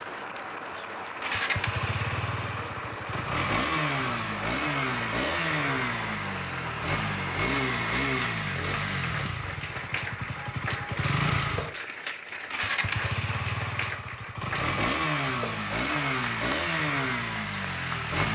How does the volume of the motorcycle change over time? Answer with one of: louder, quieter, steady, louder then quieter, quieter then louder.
steady.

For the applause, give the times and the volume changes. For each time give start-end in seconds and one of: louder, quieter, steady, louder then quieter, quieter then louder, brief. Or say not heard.
0.0-18.2 steady.